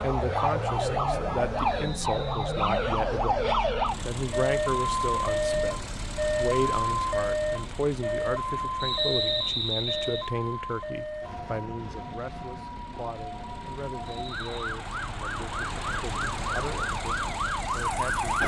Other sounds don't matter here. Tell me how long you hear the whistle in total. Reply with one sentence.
You can hear the whistle for 3 seconds altogether.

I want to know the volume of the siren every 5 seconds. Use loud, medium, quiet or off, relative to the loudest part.
loud, loud, medium, loud.